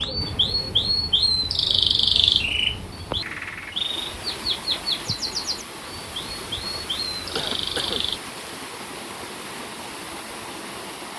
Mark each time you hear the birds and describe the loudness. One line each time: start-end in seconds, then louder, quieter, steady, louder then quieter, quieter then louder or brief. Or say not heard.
0.0-8.2 quieter.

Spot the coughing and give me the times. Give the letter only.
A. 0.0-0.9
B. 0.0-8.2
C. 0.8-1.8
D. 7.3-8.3
D.